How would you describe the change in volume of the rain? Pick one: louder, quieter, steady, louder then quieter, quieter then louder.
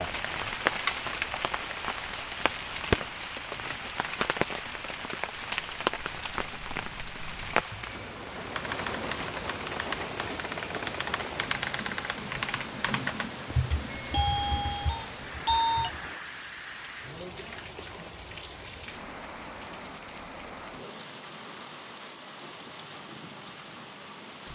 quieter.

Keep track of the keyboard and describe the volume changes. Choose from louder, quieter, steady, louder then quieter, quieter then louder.
louder then quieter.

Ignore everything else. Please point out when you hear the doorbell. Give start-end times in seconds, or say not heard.
13.9-15.9.